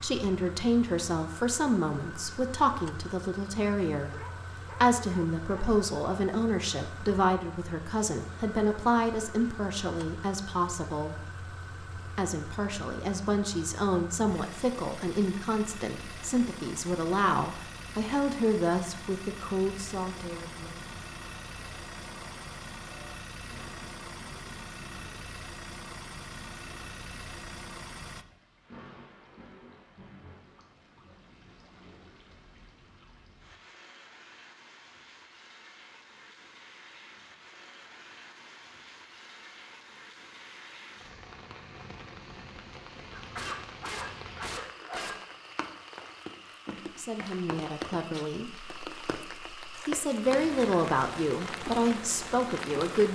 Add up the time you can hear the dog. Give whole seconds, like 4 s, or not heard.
4 s.